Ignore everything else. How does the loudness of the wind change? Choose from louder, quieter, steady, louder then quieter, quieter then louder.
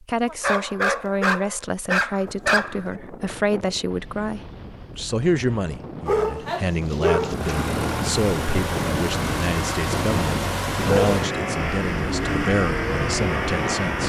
louder.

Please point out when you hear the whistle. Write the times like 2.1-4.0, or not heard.
not heard.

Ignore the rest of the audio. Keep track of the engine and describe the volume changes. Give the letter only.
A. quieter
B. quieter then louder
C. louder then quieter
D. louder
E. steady
E.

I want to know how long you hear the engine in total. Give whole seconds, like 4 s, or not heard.
7 s.